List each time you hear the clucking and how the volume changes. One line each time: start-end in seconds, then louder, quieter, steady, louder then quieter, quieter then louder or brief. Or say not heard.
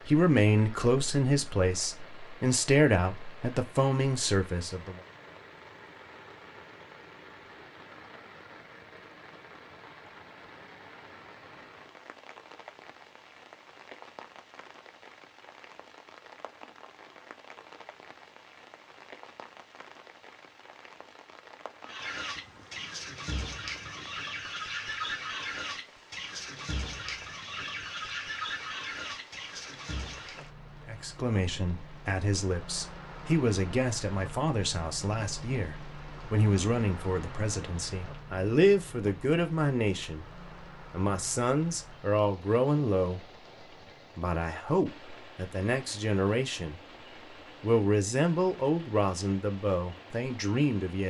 21.8-30.4 steady.